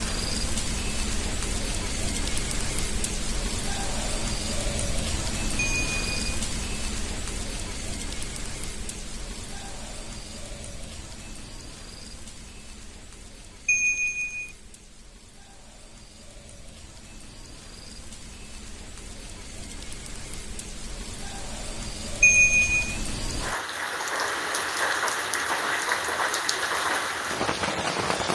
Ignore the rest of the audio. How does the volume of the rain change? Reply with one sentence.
The loudness of the rain goes down, then up.